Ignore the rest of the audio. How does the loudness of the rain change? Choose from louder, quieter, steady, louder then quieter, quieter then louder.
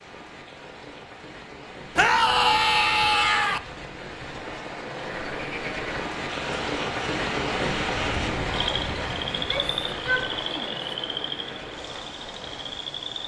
louder then quieter.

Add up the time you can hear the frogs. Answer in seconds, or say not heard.
8 s.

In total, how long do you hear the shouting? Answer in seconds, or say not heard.
3 s.